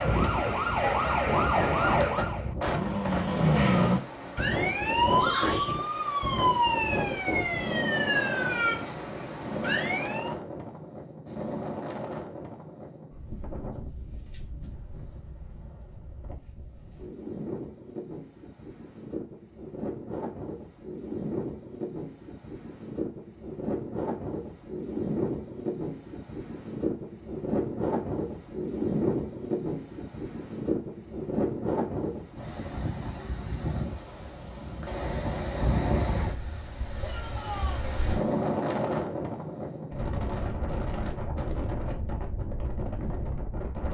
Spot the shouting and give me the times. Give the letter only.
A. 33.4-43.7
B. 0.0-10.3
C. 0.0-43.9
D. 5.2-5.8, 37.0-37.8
D.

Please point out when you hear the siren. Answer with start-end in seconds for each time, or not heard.
0.0-10.3.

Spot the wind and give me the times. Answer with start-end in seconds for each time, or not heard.
0.0-43.9.